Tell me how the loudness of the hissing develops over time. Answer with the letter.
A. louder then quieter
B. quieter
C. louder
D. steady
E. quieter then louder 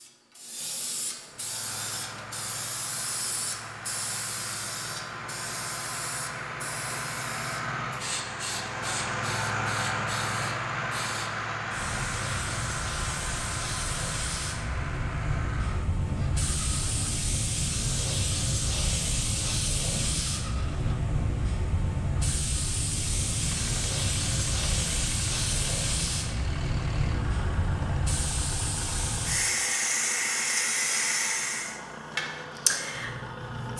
C.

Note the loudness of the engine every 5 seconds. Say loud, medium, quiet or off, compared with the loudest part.
medium, loud, loud, medium, medium, medium, medium.